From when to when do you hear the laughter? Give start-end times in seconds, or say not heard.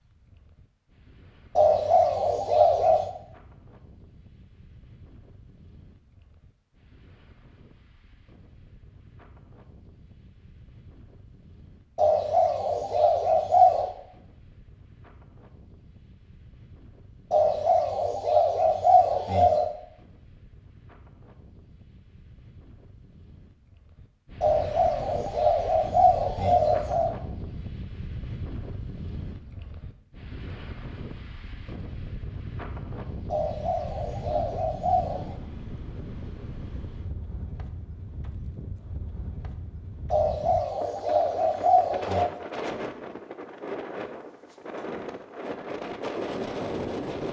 not heard.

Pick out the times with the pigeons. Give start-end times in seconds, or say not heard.
1.6-3.1, 11.9-13.9, 17.3-19.7, 24.4-27.1, 33.3-35.4, 40.1-42.3.